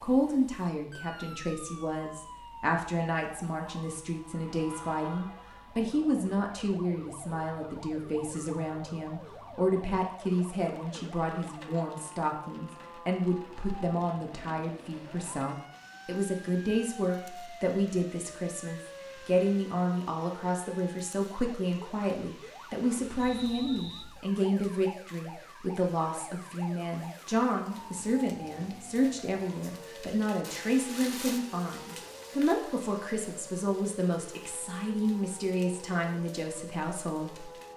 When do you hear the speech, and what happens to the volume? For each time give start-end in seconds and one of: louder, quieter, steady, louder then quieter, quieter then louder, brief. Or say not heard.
0.0-37.7 steady.